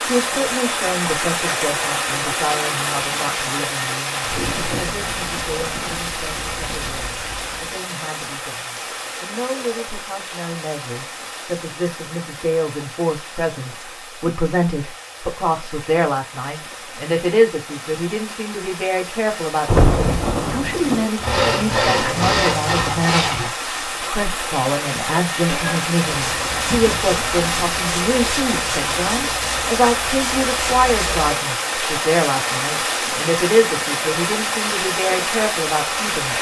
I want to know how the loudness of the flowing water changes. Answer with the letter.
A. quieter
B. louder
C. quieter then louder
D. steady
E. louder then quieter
C.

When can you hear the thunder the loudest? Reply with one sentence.
The loudest moment of the thunder is at 20 seconds.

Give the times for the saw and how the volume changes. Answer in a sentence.
You can hear the saw briefly from 21.2 to 23.6 s; and from 25.4 to 31.1 s, at a steady volume.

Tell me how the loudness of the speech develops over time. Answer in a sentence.
The volume of the speech goes up.